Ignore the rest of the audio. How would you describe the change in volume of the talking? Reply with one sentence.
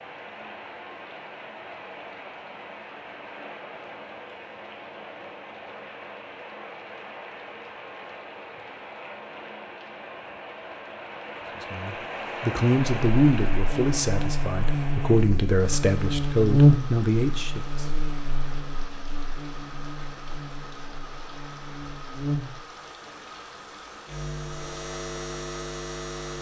The volume of the talking stays about the same.